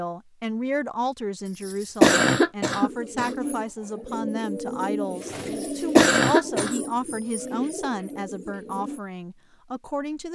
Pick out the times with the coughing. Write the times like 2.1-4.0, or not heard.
1.6-3.4, 5.5-6.8.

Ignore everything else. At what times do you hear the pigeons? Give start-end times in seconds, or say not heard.
2.8-9.0.